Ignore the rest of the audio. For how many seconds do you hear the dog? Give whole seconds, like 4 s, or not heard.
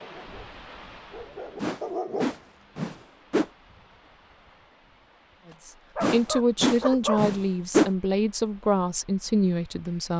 4 s.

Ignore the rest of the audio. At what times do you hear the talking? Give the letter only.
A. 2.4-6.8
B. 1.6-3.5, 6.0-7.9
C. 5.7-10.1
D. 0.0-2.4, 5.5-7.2
C.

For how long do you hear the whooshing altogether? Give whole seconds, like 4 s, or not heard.
4 s.